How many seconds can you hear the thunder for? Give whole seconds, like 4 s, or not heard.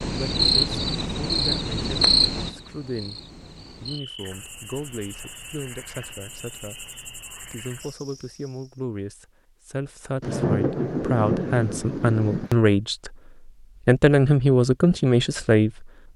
2 s.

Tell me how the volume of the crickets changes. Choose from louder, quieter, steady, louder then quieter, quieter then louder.
quieter.